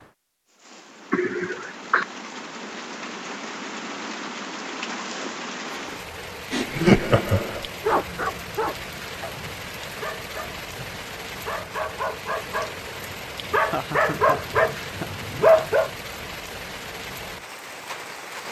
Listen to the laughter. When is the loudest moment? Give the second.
7 s.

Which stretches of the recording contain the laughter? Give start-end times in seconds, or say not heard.
1.1-2.0, 6.5-7.7, 13.5-15.7.